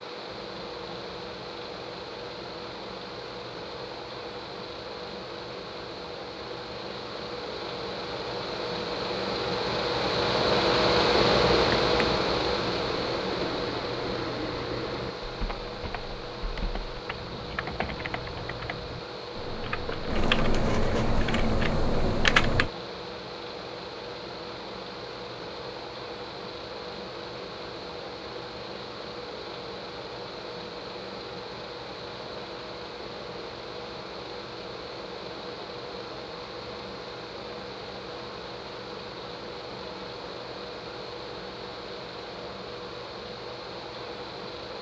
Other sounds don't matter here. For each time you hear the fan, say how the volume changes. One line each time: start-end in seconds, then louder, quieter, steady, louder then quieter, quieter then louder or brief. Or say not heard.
0.0-44.7 louder then quieter.